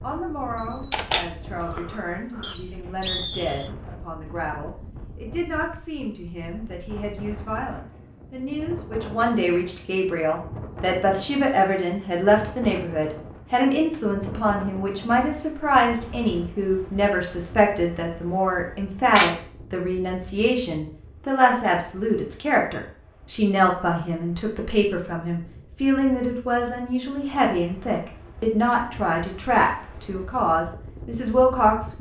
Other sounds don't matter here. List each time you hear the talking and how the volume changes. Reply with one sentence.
You can hear the talking from 0.0 to 31.9 s, getting louder.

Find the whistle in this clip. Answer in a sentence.
You can hear the whistle from 2.4 to 3.7 s.